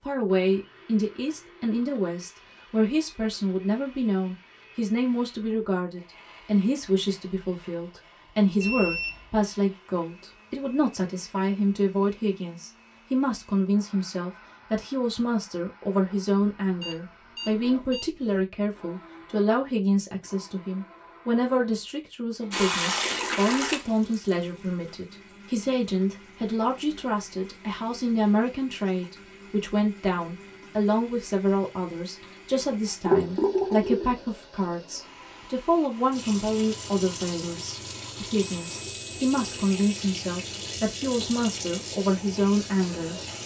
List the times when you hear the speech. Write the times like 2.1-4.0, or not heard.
0.0-43.2.